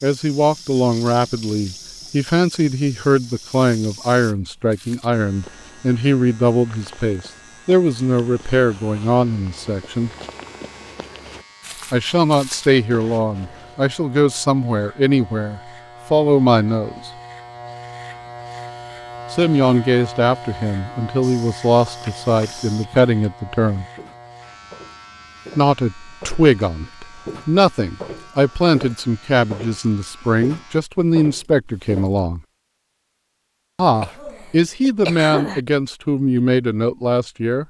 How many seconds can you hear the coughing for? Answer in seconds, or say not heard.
2 s.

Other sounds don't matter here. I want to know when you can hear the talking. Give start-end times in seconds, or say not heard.
0.0-10.1, 11.9-17.1, 19.3-23.9, 25.6-32.4, 33.8-37.6.